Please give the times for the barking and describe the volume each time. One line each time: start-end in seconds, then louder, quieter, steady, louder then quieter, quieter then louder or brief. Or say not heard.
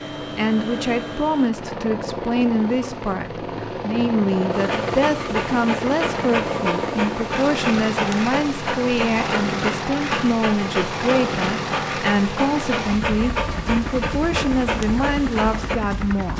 4.5-15.8 steady.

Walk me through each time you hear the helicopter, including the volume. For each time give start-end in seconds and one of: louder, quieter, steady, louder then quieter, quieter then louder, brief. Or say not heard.
0.0-16.3 steady.